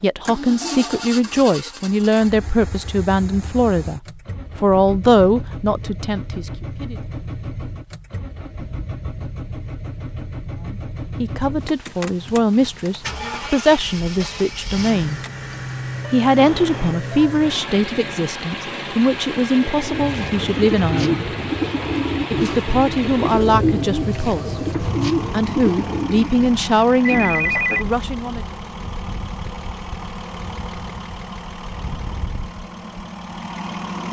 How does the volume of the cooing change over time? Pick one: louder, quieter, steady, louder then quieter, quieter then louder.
steady.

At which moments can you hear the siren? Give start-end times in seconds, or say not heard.
not heard.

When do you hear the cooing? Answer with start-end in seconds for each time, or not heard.
19.6-26.3.